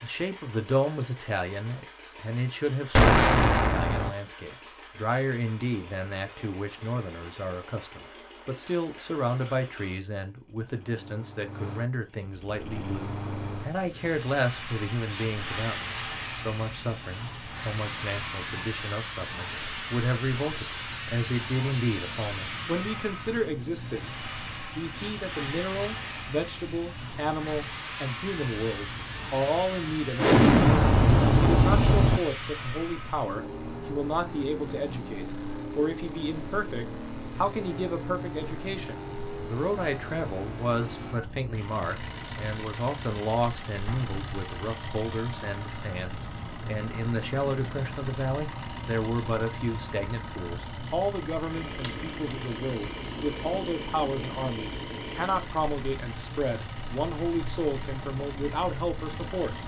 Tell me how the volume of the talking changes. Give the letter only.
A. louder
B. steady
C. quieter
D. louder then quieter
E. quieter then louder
B.